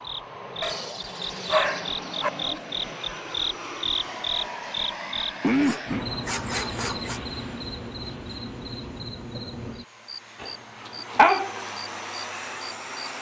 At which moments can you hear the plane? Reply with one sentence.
The plane can be heard from 0.0 to 13.1 s.